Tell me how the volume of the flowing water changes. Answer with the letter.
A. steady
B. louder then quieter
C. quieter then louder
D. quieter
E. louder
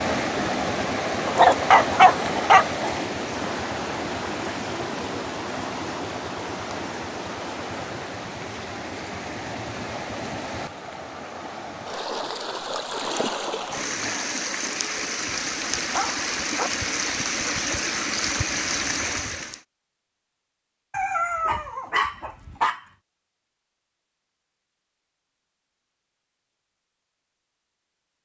C.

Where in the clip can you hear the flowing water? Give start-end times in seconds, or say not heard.
0.0-19.6.